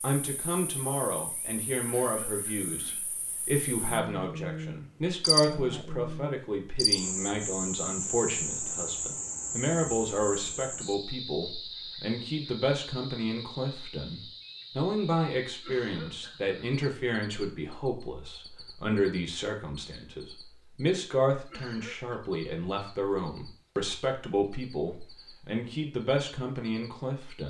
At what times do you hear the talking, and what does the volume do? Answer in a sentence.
The talking can be heard from 0.0 to 27.4 s, at a steady volume.